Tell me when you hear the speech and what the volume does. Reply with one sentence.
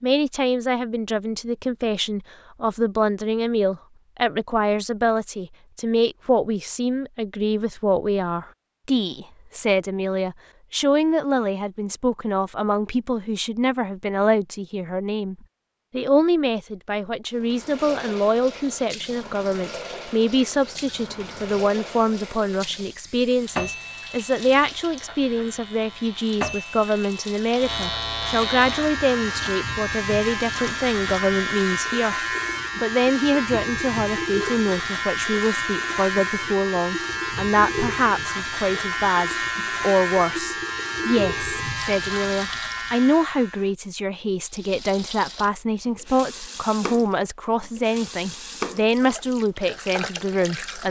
The speech can be heard from 0.0 to 32.2 s, at a steady volume; and from 32.8 to 50.8 s, at a steady volume.